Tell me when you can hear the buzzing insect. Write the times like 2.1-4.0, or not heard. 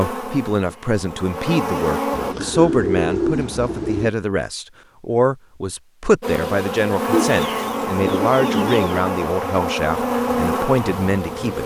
0.0-2.4, 6.2-11.6.